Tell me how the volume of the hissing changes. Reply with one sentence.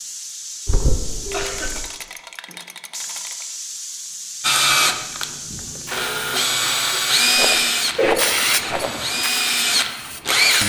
The volume of the hissing goes up.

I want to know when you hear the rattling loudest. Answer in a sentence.
The volume of the rattling peaks at 8 seconds.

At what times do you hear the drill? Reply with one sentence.
The drill can be heard from 4.4 to 10.6 s.